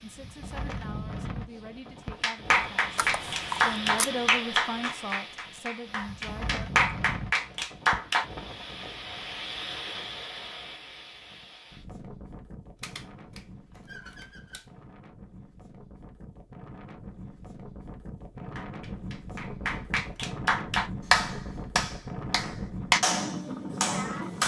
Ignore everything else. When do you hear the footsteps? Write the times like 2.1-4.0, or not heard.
not heard.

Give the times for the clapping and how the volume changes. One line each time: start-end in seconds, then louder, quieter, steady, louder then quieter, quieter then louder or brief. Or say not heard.
2.2-8.2 quieter then louder
18.4-24.4 louder then quieter.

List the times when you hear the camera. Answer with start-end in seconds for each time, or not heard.
3.0-4.1, 12.8-14.7.